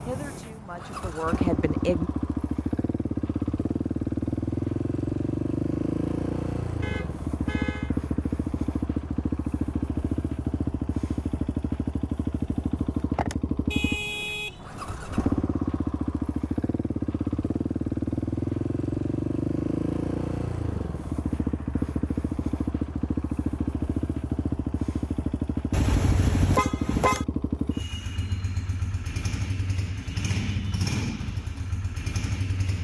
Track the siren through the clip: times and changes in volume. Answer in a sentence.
The siren can't be heard in this clip.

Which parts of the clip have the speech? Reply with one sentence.
The speech can be heard from 0.1 to 2.1 s.